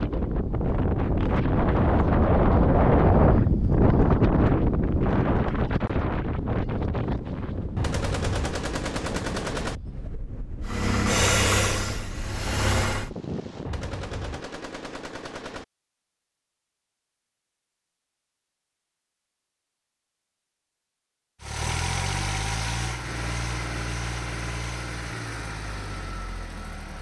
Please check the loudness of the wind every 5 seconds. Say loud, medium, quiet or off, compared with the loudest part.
loud, medium, quiet, off, off, off.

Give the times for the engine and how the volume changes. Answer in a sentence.
The engine can be heard briefly from 10.6 to 13.1 s; and from 21.4 to 26.9 s, getting quieter.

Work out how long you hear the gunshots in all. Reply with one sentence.
The gunshots can be heard for 4 seconds in total.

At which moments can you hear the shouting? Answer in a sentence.
You can't hear the shouting here.